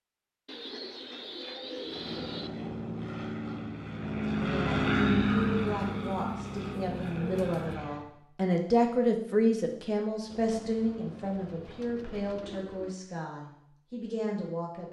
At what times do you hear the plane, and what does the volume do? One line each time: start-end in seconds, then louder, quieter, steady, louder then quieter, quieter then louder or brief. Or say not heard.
1.8-8.1 louder then quieter.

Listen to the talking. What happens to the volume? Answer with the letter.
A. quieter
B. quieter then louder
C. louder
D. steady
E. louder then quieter
E.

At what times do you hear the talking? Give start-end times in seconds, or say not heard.
4.3-14.8.